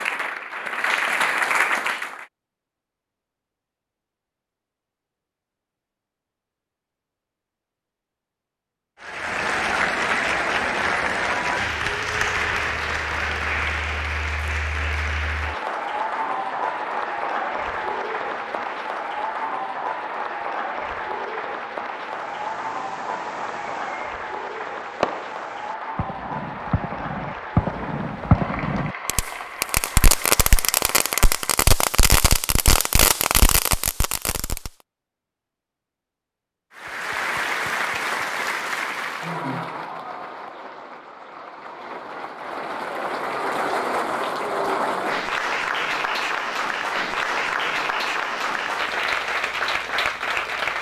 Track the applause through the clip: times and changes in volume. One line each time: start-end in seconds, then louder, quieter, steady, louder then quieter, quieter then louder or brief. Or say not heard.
0.0-2.2 brief
9.0-31.7 quieter
36.8-50.7 quieter then louder.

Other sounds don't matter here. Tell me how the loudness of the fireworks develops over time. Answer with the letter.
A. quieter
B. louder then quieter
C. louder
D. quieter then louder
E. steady
C.